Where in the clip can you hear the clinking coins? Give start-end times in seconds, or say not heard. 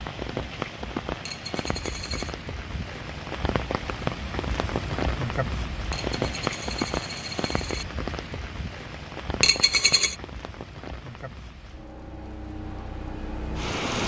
1.2-2.4, 5.9-7.8, 9.4-10.2.